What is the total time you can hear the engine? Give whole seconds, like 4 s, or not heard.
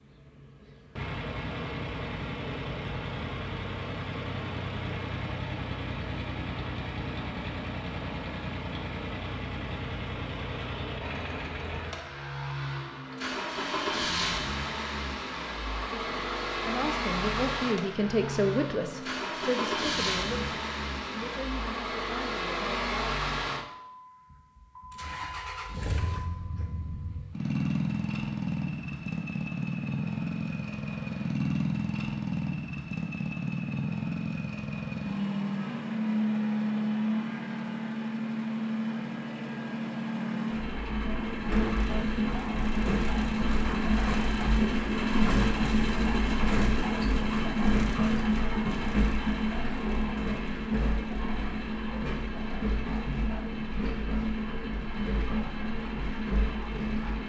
57 s.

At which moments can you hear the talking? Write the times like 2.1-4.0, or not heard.
15.9-23.1.